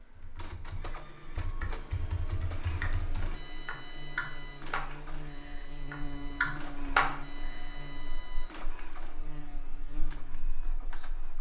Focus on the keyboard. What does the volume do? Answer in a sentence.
The volume of the keyboard goes up.